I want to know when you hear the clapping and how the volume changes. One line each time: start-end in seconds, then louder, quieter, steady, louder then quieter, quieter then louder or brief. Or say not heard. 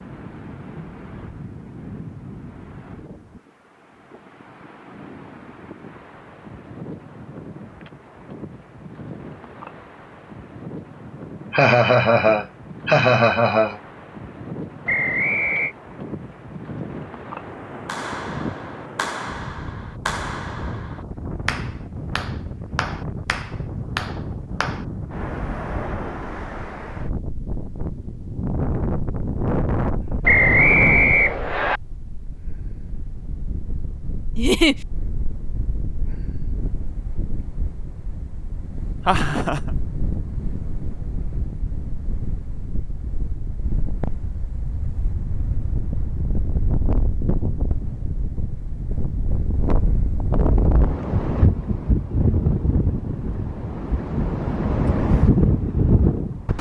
17.9-24.9 steady.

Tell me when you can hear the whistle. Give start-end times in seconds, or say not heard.
14.8-15.8, 30.2-31.8.